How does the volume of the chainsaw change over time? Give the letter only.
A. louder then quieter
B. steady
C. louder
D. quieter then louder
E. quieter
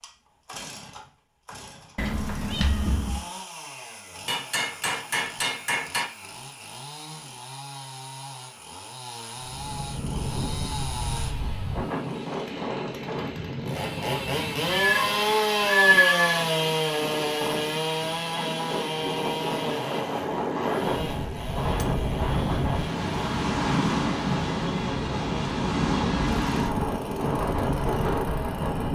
A.